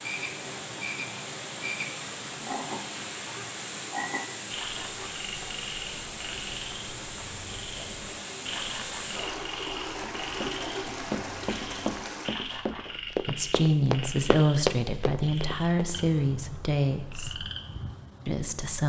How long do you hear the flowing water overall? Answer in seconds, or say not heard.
12 s.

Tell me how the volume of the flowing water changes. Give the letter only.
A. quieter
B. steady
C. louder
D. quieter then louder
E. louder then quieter
B.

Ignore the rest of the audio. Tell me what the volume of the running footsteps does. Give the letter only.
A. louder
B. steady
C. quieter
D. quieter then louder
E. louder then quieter
A.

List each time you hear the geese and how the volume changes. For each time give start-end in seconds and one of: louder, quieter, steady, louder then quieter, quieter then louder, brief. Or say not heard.
not heard.